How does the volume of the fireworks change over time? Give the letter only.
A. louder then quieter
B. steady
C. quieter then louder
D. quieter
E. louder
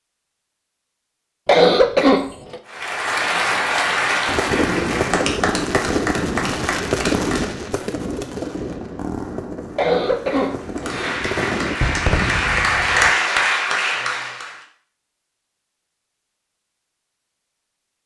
C.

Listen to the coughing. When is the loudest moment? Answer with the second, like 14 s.
2 s.